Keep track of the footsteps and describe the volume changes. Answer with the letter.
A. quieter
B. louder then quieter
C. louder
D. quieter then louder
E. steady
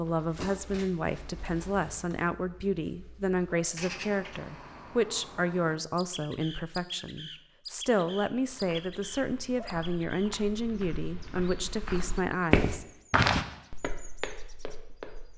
B.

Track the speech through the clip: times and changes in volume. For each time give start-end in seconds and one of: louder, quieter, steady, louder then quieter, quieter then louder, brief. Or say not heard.
0.0-12.8 steady.